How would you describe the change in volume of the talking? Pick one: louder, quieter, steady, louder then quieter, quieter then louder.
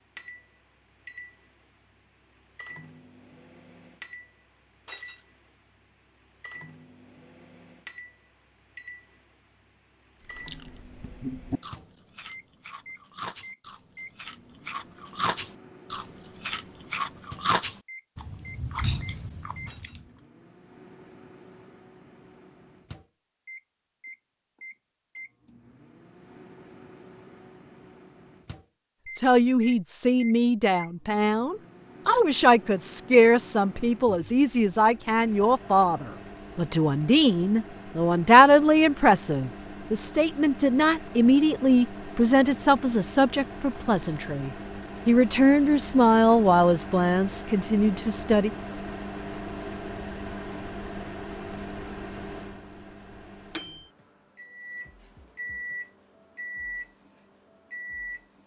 steady.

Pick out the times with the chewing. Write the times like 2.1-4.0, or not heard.
10.3-20.0.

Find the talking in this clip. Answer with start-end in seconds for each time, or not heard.
29.1-48.5.